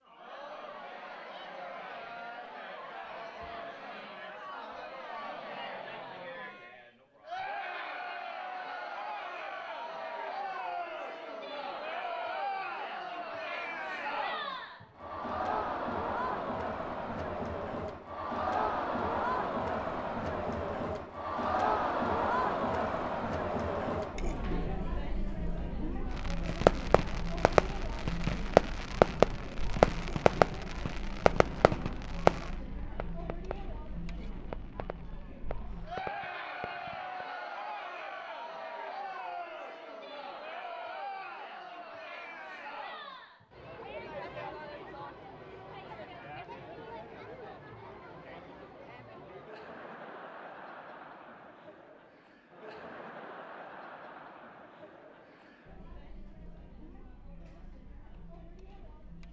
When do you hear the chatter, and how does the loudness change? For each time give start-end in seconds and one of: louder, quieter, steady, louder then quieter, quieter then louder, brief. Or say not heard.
0.0-59.2 louder then quieter.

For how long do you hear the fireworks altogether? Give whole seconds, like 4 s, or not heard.
11 s.